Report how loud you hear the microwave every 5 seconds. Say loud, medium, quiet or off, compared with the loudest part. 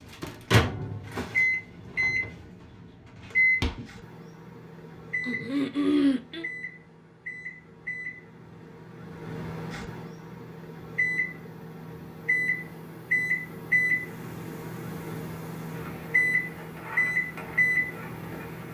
loud, medium, loud, loud.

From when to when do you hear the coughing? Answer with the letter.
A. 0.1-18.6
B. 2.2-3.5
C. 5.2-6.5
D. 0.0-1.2
C.